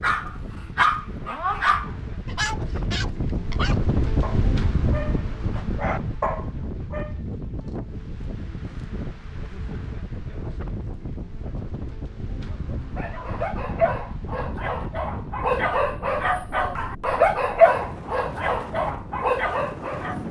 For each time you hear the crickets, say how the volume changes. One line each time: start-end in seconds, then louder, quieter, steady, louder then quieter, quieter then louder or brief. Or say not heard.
not heard.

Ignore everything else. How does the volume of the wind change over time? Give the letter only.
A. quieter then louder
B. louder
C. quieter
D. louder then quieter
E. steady
C.